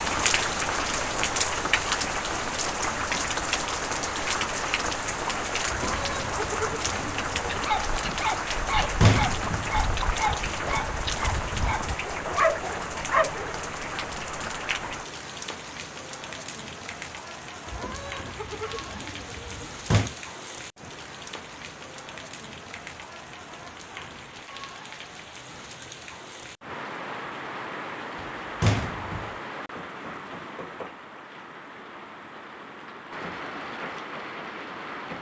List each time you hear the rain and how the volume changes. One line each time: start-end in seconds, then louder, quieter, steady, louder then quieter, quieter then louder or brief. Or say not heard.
0.0-35.1 quieter.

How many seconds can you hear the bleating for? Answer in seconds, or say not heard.
4 s.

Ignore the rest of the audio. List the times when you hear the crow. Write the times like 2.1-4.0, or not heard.
not heard.